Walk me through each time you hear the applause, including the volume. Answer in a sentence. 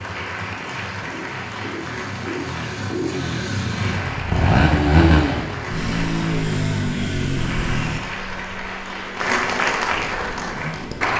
The applause can be heard from 0.0 to 11.1 s, getting louder.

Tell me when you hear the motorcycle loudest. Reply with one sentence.
The loudest moment of the motorcycle is at 5 seconds.